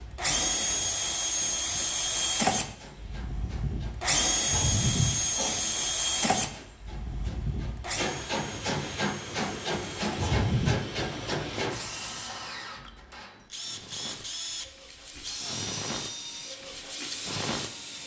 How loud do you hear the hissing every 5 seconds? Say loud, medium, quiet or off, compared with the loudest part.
quiet, loud, loud, loud.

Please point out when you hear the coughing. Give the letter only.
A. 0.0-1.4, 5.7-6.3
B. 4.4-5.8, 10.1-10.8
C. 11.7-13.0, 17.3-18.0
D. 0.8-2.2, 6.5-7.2
B.